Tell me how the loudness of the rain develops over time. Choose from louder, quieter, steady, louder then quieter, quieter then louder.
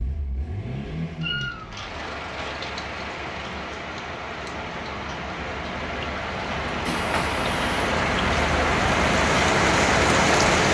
louder.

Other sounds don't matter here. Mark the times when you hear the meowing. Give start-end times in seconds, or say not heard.
1.2-2.5, 6.8-7.9.